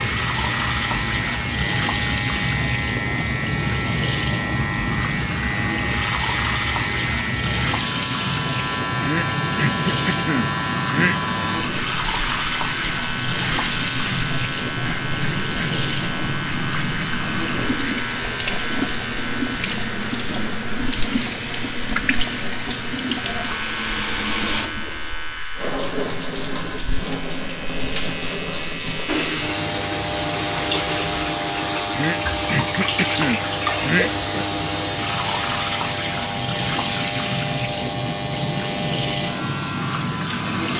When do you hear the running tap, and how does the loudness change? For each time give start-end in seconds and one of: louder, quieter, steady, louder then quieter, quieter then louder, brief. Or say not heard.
0.0-40.7 steady.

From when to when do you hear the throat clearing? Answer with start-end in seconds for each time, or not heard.
9.0-11.2, 31.9-34.5.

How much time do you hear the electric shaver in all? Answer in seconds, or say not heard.
41 s.